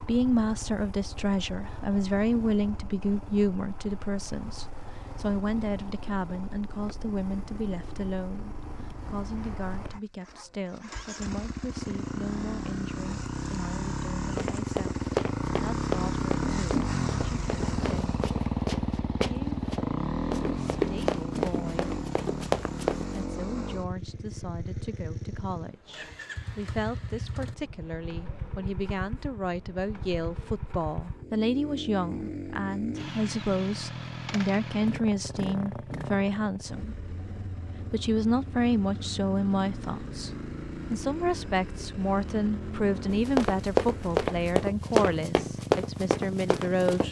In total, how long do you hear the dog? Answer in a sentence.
The dog can't be heard in this clip.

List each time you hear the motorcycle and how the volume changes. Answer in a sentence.
The motorcycle can be heard from 0.0 to 47.0 s, getting louder then quieter.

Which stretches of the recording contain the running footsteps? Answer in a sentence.
You can hear the running footsteps from 14.3 to 23.2 s and from 43.1 to 47.0 s.